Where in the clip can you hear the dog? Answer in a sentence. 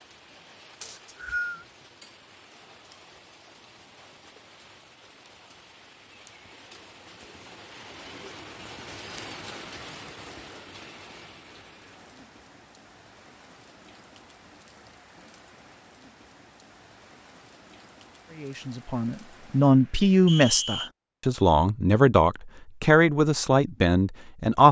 You can't hear the dog here.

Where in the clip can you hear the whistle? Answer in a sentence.
You can hear the whistle from 0.8 to 1.6 s and from 20.2 to 20.9 s.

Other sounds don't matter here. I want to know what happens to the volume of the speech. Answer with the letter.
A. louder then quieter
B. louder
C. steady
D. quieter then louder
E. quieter
C.